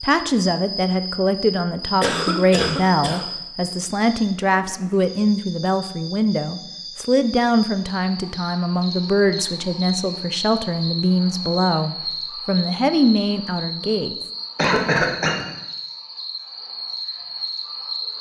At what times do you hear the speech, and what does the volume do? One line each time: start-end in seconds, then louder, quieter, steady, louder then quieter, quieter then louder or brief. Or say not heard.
0.0-14.2 steady.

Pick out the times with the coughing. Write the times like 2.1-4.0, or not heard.
2.0-3.2, 14.6-15.4.